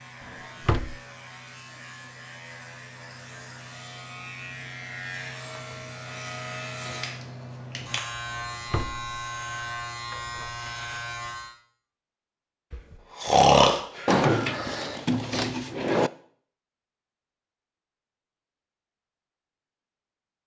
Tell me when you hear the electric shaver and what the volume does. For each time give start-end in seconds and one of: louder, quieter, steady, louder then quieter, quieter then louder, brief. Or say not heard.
0.0-11.6 louder.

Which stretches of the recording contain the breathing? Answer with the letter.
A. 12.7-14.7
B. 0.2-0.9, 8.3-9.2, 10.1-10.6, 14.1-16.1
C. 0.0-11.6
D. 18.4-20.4
A.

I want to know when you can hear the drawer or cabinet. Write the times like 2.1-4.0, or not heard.
0.2-0.9, 8.3-9.2, 10.1-10.6, 14.1-16.1.